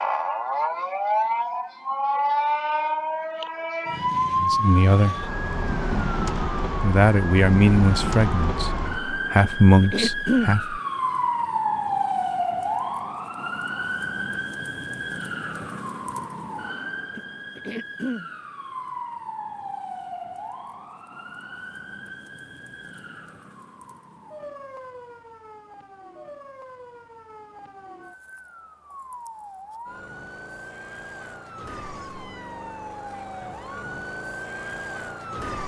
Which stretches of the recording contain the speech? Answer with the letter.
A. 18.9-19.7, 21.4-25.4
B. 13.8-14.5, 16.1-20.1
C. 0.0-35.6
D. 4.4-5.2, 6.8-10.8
D.